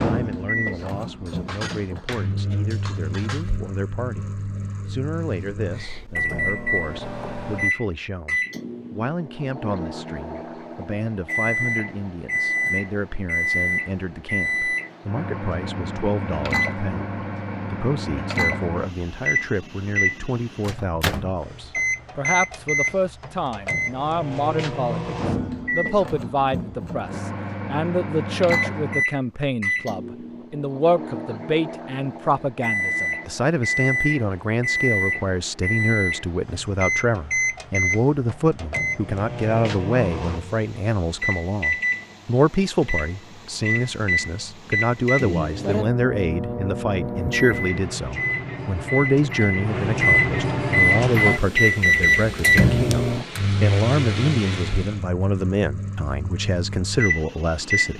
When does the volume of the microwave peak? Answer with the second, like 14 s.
52 s.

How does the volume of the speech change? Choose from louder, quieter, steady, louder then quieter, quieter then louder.
louder.